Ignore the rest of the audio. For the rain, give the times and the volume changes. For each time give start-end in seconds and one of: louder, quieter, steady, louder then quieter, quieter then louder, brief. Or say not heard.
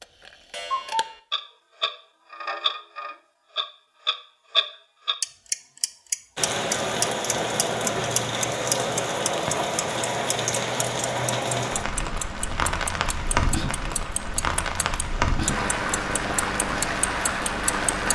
6.3-18.1 steady.